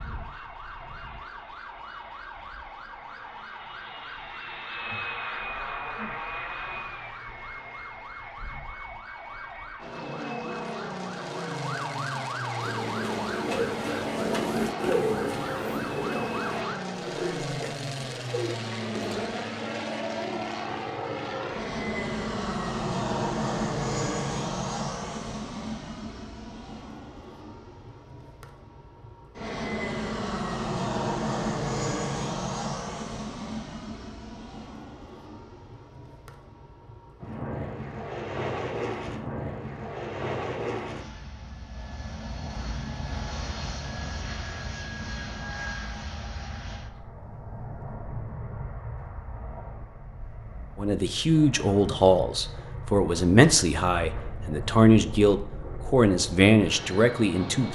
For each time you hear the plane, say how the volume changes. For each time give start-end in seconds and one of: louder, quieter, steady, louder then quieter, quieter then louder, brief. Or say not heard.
0.0-57.7 louder then quieter.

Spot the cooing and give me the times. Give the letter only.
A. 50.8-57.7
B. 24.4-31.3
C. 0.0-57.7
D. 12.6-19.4
D.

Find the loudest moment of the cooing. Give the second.
15 s.